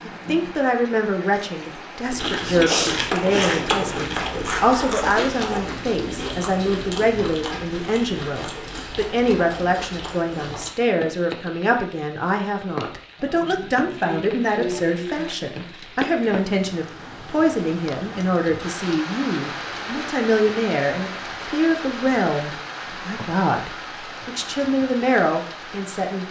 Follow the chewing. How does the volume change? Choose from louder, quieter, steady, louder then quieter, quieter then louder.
quieter.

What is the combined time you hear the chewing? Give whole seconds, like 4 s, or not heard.
9 s.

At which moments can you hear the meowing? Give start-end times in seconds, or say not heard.
not heard.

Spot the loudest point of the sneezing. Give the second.
3 s.